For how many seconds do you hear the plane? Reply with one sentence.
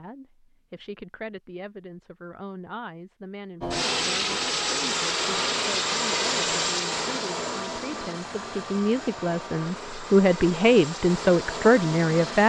You can hear the plane for 9 seconds altogether.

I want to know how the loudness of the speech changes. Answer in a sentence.
The volume of the speech goes up.